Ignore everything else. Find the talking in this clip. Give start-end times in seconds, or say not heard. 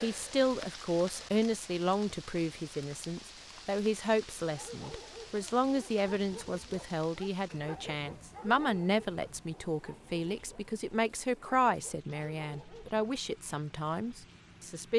0.0-14.9.